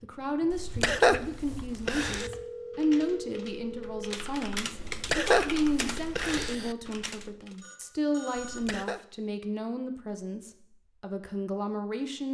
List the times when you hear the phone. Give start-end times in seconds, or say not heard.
2.1-4.1, 7.6-8.6.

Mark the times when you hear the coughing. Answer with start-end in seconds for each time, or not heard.
0.5-2.3, 4.9-6.5, 8.3-9.0.